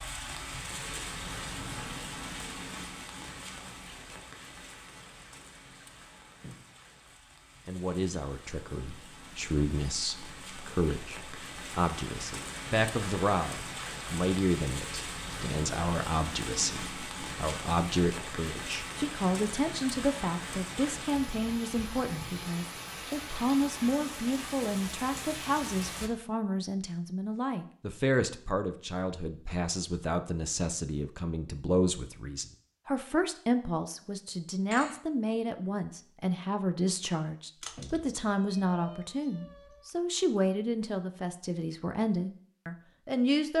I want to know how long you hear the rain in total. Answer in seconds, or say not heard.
26 s.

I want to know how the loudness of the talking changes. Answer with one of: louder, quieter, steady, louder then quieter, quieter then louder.
steady.